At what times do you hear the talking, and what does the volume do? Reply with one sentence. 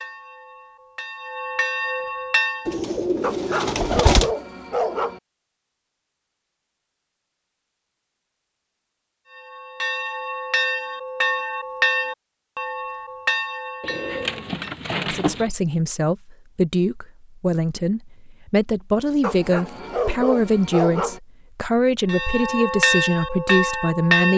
The talking can be heard from 15.0 to 24.3 s, at a steady volume.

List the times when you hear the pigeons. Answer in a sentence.
The pigeons can be heard from 2.6 to 4.3 s and from 13.8 to 15.5 s.